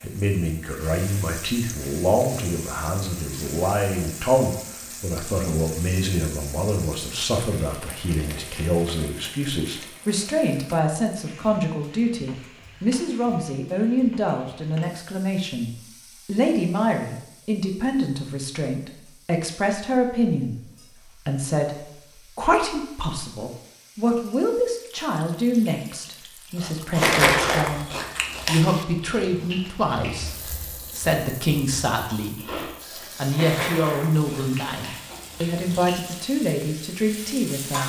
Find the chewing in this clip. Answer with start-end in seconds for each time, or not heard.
26.6-36.0.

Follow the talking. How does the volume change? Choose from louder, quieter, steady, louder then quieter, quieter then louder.
steady.